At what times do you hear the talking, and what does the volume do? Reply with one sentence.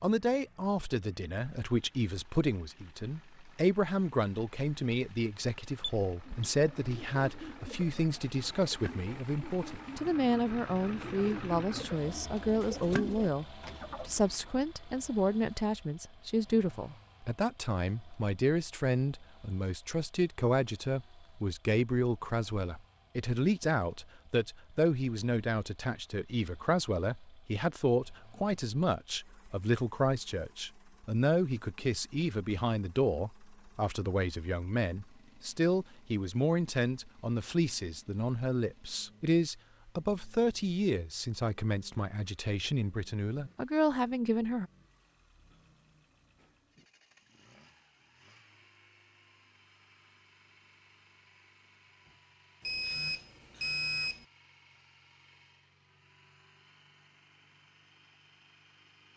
The talking can be heard from 0.0 to 44.6 s, at a steady volume.